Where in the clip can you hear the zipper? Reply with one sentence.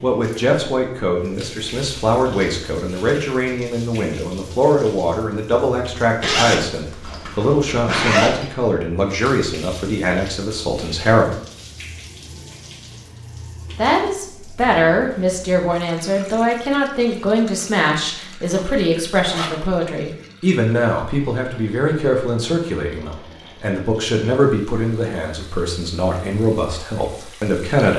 You can hear the zipper from 6.2 to 8.5 s and from 18.4 to 19.6 s.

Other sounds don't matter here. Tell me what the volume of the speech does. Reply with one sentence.
The volume of the speech stays about the same.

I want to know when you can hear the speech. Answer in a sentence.
You can hear the speech from 0.0 to 11.3 s and from 13.8 to 27.9 s.